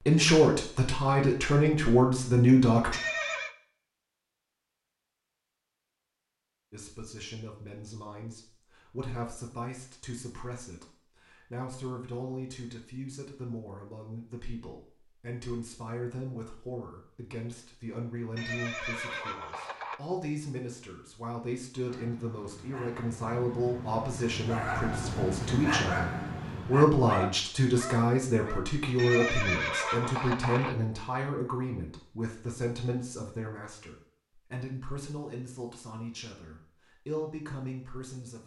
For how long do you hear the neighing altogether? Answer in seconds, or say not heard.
4 s.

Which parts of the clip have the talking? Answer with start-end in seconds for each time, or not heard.
0.0-3.0, 6.7-38.4.